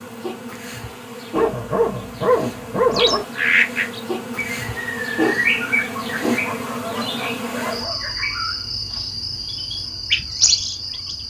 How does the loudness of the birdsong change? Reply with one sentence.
The volume of the birdsong goes down, then up.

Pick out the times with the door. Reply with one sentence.
You can't hear the door here.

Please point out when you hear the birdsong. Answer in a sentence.
You can hear the birdsong from 2.9 to 11.2 s.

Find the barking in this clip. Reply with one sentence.
You can hear the barking from 1.4 to 3.2 s and from 6.4 to 8.1 s.